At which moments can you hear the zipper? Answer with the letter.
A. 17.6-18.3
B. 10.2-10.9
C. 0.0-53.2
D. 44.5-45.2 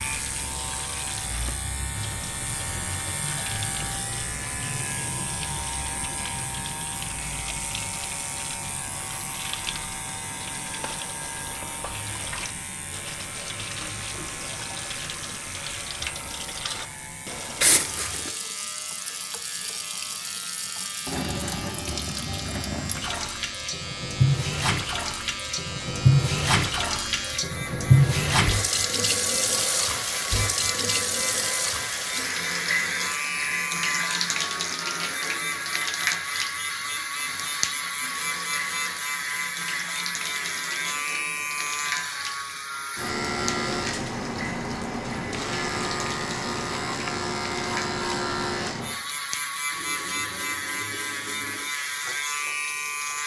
A.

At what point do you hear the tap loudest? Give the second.
28 s.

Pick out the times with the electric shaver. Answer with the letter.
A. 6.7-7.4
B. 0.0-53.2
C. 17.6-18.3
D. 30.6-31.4
B.